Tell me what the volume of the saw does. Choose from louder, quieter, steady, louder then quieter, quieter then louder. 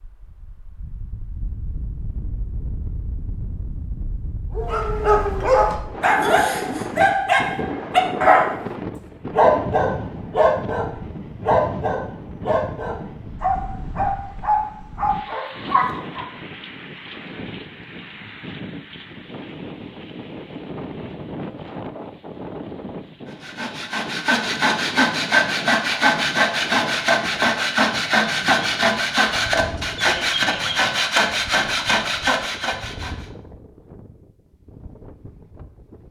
steady.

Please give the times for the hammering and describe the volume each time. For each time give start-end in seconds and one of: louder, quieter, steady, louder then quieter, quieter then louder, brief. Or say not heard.
not heard.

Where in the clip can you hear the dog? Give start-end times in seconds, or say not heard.
4.5-16.2.